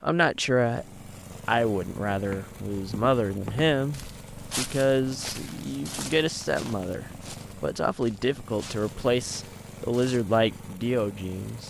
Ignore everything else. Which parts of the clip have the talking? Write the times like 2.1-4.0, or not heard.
0.0-0.8, 1.4-11.6.